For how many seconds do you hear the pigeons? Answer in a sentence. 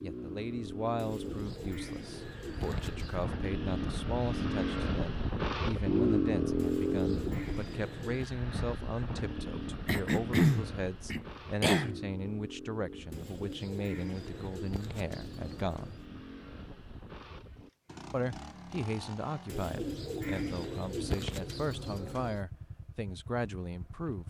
You can hear the pigeons for 10 seconds altogether.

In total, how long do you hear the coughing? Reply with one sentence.
You can hear the coughing for 2 seconds altogether.